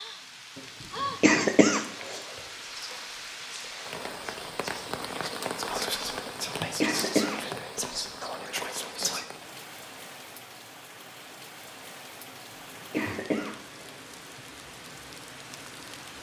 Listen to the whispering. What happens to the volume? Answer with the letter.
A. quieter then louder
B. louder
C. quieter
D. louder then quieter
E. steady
B.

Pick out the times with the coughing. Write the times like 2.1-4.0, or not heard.
0.6-2.2, 6.7-7.5, 12.7-13.9.